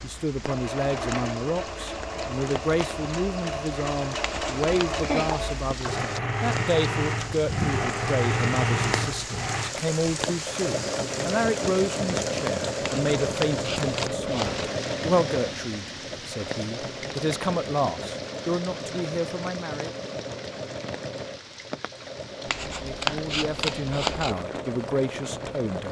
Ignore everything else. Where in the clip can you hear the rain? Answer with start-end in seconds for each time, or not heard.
0.0-25.8.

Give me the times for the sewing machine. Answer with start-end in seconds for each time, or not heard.
0.0-25.8.